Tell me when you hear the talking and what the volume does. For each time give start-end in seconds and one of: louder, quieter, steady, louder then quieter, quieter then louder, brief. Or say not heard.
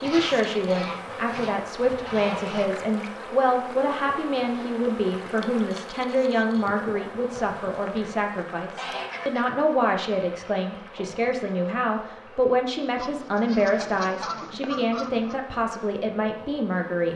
0.0-17.1 steady.